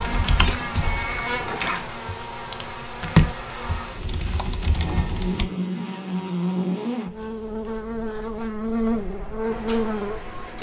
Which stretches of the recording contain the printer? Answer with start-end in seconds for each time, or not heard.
0.0-1.9, 8.8-10.5.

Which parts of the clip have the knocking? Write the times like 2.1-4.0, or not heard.
not heard.